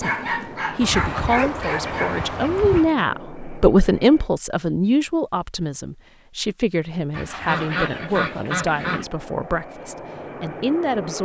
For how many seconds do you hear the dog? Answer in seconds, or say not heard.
2 s.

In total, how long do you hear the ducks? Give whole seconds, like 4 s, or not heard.
4 s.